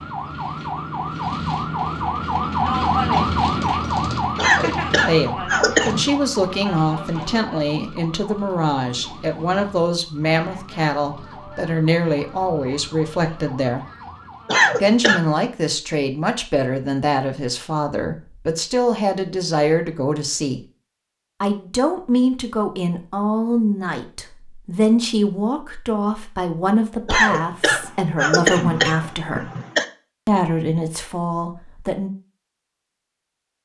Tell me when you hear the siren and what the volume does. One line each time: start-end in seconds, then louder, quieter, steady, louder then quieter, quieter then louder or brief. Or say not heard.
0.0-14.7 quieter.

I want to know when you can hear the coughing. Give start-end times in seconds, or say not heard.
4.3-6.0, 14.4-15.2, 27.1-29.9.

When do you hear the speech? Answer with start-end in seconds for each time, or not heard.
5.0-13.8, 14.8-20.6, 21.4-29.4, 30.2-32.1.